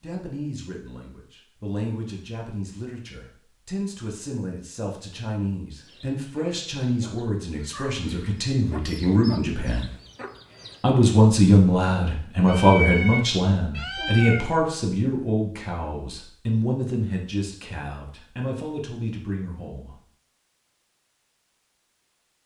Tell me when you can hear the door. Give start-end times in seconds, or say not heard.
not heard.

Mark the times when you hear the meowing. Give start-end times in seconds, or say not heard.
12.4-14.5.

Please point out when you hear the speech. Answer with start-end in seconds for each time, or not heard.
0.0-9.9, 10.8-19.9.